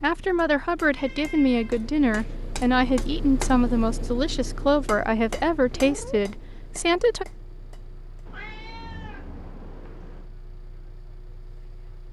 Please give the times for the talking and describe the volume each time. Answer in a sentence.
The talking can be heard from 0.0 to 7.2 s, at a steady volume.